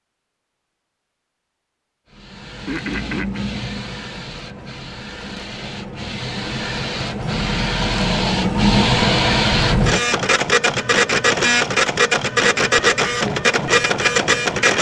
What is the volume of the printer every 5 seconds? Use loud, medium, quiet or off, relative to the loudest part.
quiet, loud, loud.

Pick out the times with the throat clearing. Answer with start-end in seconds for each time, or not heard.
2.6-3.5.